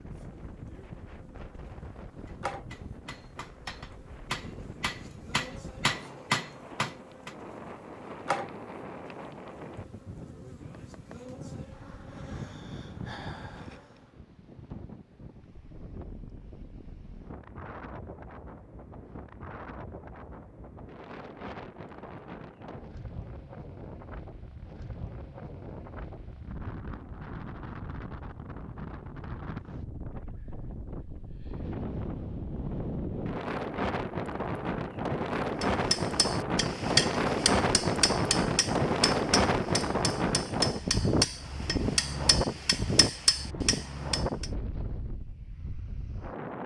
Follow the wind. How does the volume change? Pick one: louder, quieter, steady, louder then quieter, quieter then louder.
louder.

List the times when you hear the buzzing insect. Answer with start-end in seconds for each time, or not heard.
0.0-14.2.